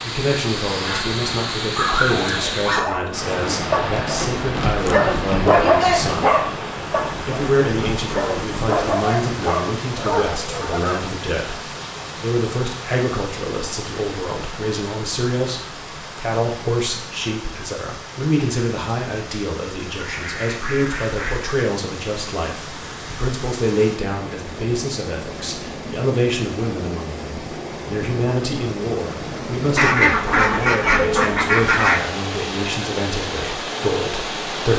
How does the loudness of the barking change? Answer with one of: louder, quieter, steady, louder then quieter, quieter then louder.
louder then quieter.